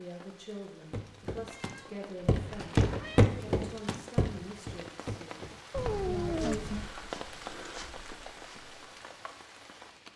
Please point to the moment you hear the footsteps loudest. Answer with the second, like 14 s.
3 s.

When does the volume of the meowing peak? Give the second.
6 s.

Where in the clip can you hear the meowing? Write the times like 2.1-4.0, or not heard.
1.4-3.3, 5.7-6.9.